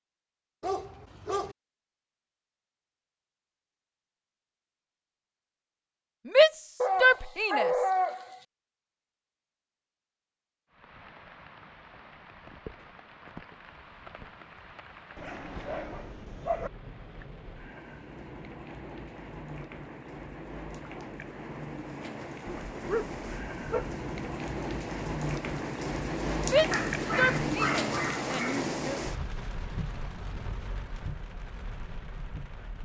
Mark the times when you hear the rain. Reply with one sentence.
You can hear the rain from 10.7 to 32.7 s.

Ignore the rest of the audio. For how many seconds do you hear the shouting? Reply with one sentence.
You can hear the shouting for 4 seconds altogether.